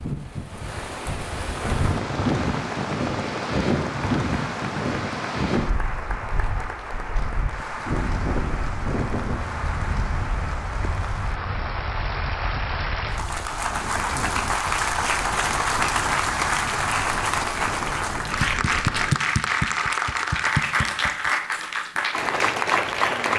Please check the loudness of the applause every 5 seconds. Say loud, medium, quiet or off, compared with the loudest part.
medium, medium, medium, loud, loud.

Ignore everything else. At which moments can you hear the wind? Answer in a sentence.
You can hear the wind from 0.0 to 19.1 s.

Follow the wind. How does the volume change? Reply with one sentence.
The loudness of the wind goes down.